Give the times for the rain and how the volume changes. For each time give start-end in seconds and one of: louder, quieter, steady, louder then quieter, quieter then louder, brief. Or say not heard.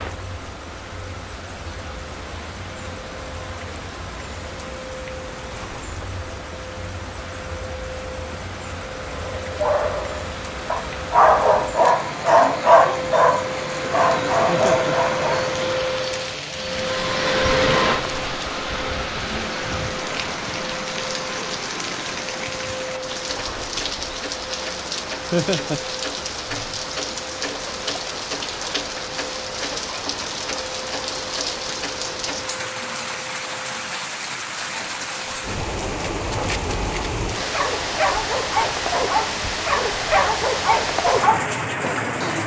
0.0-42.4 louder.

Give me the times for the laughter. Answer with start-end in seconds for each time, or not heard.
14.4-14.9, 25.3-25.8.